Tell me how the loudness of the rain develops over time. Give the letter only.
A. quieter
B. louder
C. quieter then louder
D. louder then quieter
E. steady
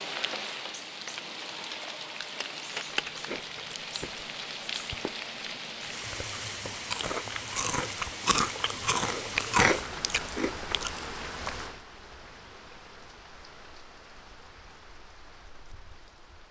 A.